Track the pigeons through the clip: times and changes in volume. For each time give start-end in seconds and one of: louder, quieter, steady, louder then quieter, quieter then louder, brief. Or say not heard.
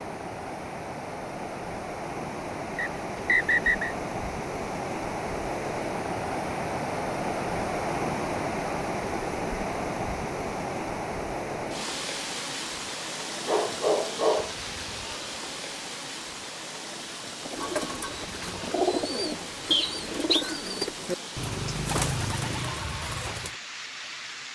17.4-23.6 steady.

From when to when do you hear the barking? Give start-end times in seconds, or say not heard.
13.4-14.6.